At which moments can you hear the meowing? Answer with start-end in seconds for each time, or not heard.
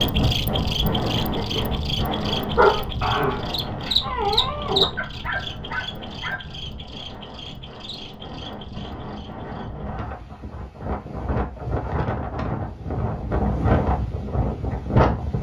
not heard.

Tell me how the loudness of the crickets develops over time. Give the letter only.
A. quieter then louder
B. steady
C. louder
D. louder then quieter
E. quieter
D.